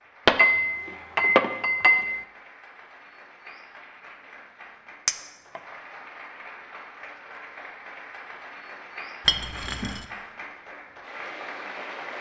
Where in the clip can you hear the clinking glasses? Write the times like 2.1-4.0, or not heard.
0.2-2.2, 5.0-5.6, 9.2-10.1.